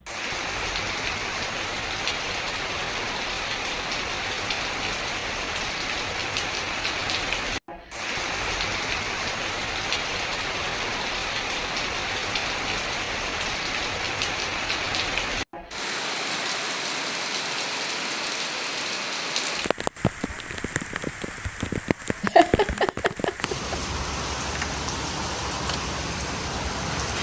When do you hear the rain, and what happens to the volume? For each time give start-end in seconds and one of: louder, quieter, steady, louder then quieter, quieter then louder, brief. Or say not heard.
0.0-27.1 steady.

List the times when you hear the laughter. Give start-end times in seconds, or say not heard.
22.2-23.8.